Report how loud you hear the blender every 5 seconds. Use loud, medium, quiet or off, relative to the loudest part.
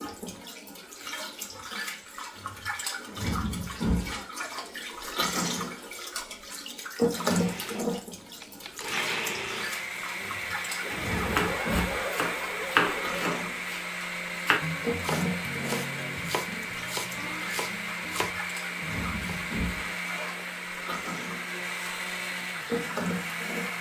off, loud, loud, loud, loud.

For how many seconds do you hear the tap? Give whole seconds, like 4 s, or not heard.
24 s.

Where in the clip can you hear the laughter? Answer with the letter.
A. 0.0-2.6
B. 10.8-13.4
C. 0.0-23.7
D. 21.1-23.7
B.